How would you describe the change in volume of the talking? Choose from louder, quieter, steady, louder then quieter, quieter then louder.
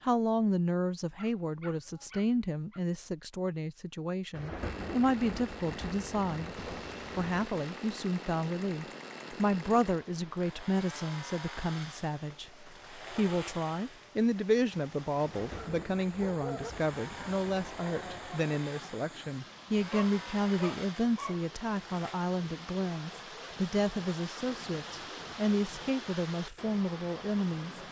steady.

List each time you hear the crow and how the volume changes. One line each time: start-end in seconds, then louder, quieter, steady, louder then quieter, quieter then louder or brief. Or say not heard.
not heard.